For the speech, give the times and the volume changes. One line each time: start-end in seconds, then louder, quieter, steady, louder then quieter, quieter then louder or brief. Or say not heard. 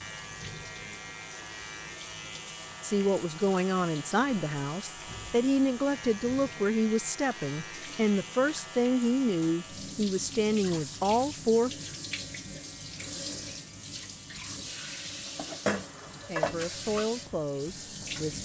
2.8-11.7 steady
16.2-18.4 brief.